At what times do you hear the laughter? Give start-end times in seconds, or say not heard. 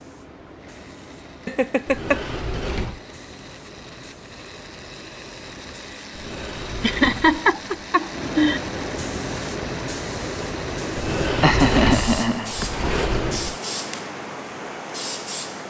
1.4-2.2, 6.8-8.6, 11.2-12.9.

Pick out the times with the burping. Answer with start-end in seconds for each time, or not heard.
not heard.